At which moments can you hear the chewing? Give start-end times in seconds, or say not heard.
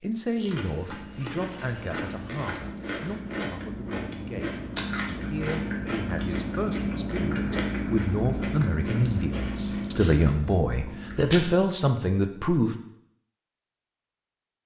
0.3-11.7.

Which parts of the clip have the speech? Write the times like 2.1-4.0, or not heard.
0.0-12.8.